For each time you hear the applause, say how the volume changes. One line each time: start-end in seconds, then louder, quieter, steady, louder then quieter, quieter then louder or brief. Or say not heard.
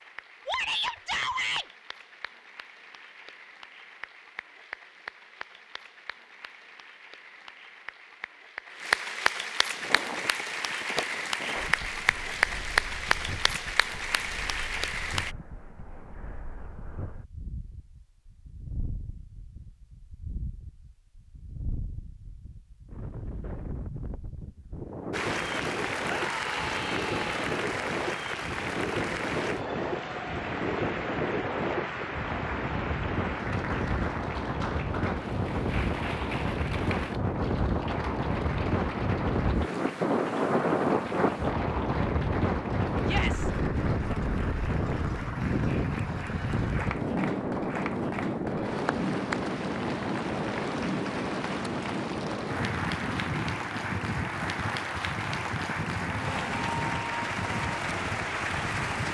0.0-15.3 louder
25.1-59.0 quieter then louder.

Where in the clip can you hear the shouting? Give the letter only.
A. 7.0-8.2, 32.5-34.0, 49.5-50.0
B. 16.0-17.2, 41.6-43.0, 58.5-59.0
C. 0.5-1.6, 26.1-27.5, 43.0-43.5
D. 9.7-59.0
C.